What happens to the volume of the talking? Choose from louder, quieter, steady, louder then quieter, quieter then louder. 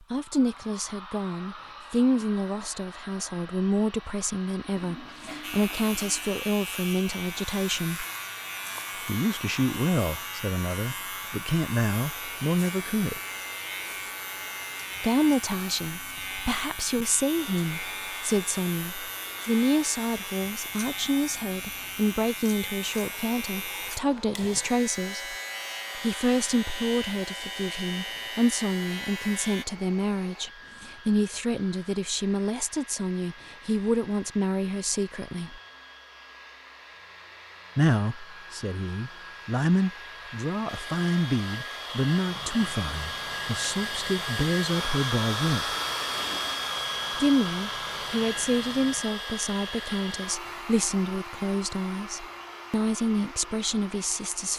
steady.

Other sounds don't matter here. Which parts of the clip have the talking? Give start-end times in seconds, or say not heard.
0.1-8.1, 9.1-13.2, 15.0-25.4, 25.9-35.6, 37.8-45.8, 47.1-54.5.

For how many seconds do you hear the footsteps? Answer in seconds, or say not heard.
not heard.